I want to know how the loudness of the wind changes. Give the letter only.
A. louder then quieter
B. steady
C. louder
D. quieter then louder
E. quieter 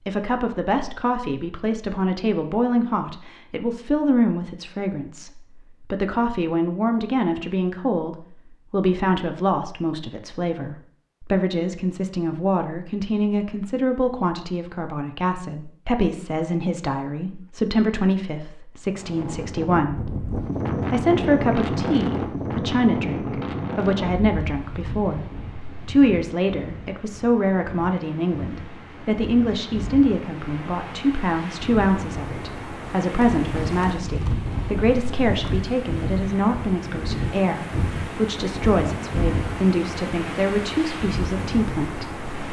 D.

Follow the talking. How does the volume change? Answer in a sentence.
The loudness of the talking stays about the same.